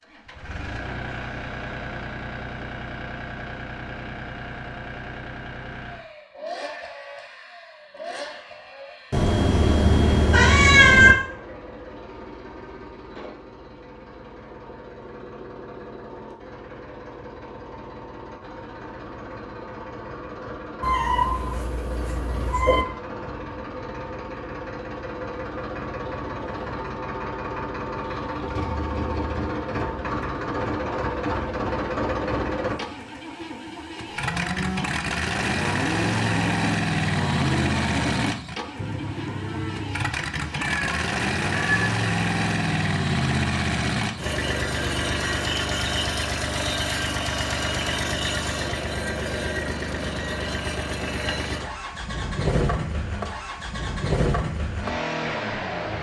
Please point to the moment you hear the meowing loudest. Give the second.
11 s.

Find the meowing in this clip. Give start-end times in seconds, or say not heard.
9.1-11.2, 20.8-22.9, 40.5-41.9.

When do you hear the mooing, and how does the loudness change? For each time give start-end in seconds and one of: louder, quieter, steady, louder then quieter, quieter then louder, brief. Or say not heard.
34.0-40.1 steady.